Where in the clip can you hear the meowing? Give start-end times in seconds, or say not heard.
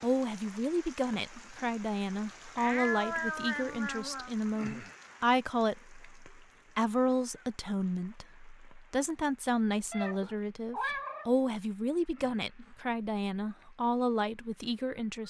2.5-4.3, 9.9-11.3.